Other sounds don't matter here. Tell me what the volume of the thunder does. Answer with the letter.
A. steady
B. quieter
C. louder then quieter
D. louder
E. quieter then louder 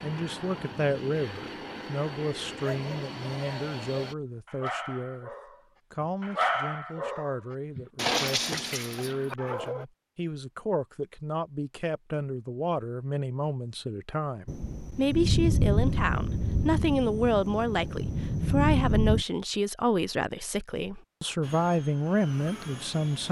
E.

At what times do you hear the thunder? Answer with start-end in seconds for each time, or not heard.
14.4-19.2.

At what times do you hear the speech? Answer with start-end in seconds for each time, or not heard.
0.0-23.2.